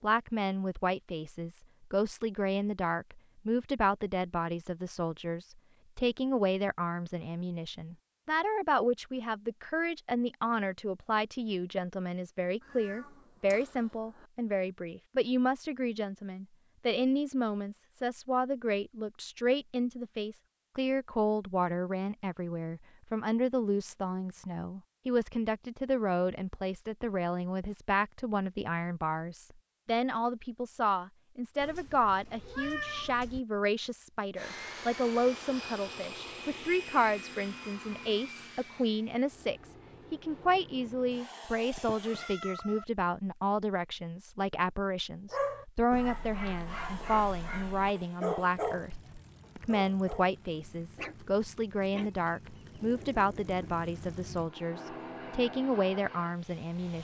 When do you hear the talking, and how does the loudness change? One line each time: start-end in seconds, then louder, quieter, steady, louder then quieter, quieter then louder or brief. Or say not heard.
0.0-56.9 steady.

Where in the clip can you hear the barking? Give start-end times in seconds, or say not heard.
45.3-50.4, 51.0-53.8.